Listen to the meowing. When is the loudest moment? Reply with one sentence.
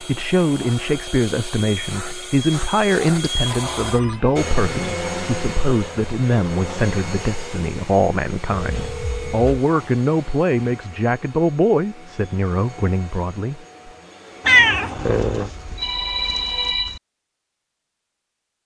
The volume of the meowing peaks at 15 seconds.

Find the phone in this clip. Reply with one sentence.
The phone can be heard from 3.5 to 4.2 s, from 8.5 to 9.4 s and from 15.0 to 17.0 s.